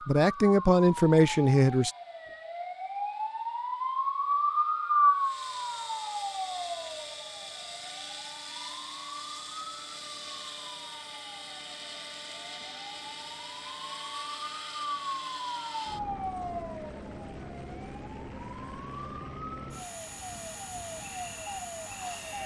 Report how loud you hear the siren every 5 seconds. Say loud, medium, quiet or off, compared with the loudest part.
loud, loud, medium, medium, medium.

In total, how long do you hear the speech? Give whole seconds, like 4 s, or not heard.
2 s.